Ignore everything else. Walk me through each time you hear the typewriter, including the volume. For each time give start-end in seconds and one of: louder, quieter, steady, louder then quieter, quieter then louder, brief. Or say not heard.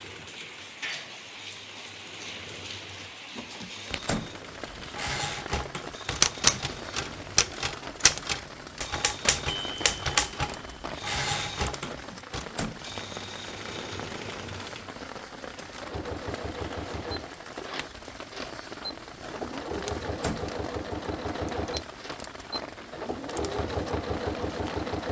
4.7-12.4 quieter.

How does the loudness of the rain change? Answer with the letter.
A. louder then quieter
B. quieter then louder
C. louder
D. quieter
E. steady
E.